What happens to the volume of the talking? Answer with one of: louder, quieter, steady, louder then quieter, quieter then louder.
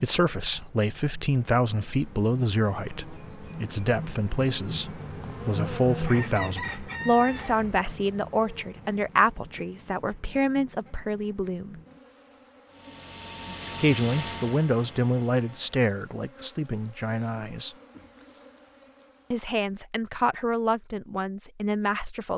steady.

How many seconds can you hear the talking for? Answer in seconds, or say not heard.
19 s.